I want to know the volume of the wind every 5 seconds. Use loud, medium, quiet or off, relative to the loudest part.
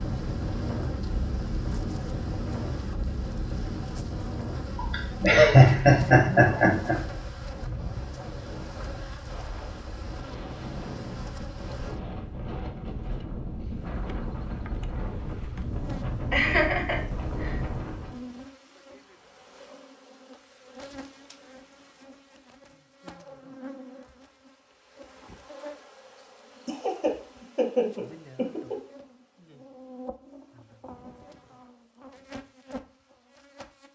loud, medium, loud, loud, off, off, off.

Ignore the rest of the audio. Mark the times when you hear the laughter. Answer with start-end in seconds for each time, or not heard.
4.8-7.0, 16.3-17.6, 26.6-28.8.